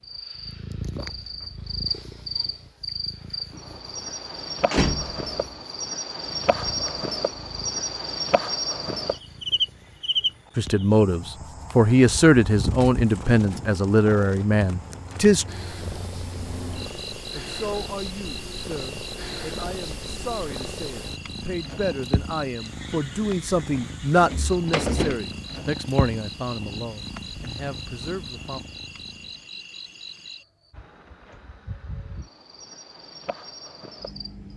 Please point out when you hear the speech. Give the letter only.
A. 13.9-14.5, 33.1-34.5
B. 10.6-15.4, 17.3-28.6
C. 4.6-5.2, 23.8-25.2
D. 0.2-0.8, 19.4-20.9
B.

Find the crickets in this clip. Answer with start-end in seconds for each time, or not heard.
0.0-34.5.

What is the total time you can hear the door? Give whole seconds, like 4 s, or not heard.
2 s.